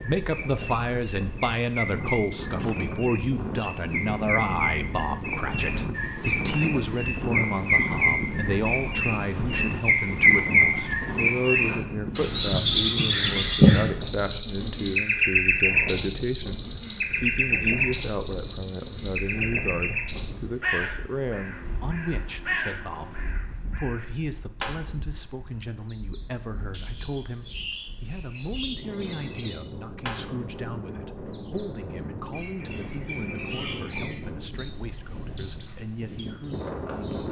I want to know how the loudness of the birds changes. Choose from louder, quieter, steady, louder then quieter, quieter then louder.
louder then quieter.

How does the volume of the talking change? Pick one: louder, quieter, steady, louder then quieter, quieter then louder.
quieter.